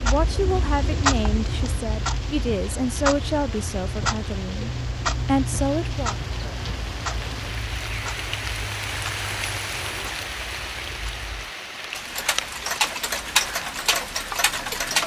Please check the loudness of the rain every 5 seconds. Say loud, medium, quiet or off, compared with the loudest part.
medium, loud, loud.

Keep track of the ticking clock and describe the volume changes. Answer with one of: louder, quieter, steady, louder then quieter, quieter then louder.
quieter then louder.